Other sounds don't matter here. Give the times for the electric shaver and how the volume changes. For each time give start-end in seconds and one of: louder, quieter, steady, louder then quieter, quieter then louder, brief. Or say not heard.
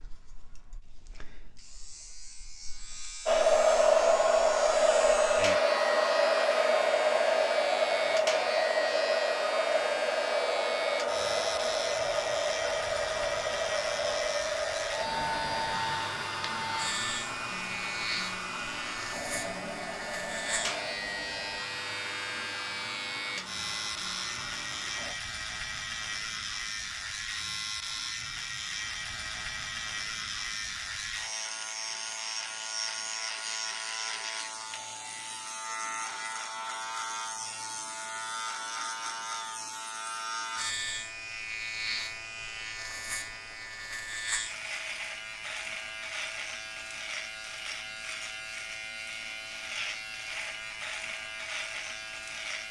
0.0-52.6 steady.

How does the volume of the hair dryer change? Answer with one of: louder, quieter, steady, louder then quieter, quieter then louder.
quieter.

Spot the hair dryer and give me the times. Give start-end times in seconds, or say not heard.
3.2-25.1.